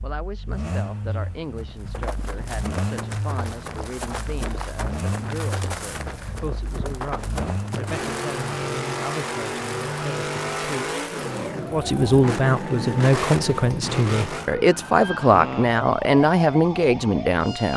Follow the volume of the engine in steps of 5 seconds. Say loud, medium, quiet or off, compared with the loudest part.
medium, loud, loud, off.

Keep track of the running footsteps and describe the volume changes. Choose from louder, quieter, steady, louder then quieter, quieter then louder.
steady.